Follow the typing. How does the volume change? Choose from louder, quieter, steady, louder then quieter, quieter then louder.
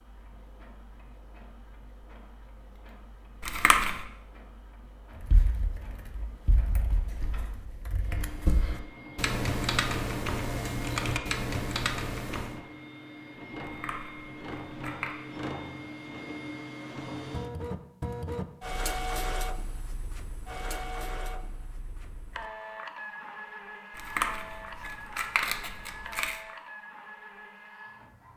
louder.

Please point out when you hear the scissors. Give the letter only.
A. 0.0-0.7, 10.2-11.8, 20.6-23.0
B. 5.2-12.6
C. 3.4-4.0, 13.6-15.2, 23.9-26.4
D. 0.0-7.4
C.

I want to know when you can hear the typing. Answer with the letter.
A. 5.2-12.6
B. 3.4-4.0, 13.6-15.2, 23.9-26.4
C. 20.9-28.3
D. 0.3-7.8
A.